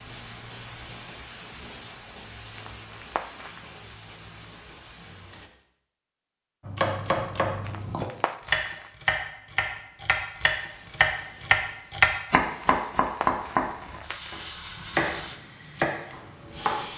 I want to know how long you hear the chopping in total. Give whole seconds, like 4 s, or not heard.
10 s.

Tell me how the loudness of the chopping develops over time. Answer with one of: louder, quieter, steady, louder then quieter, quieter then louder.
louder then quieter.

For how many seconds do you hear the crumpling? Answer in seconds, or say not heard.
4 s.